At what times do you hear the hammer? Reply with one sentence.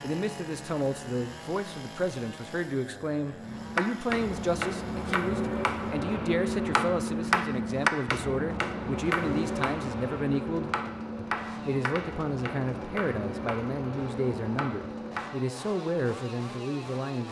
The hammer can be heard from 3.3 to 15.3 s.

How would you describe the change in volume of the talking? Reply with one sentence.
The volume of the talking stays about the same.